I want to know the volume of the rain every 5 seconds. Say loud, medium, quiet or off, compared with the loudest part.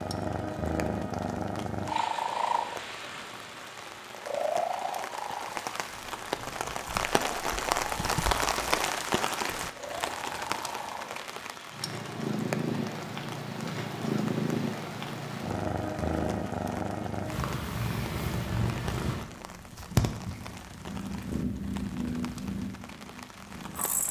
quiet, loud, medium, quiet, quiet.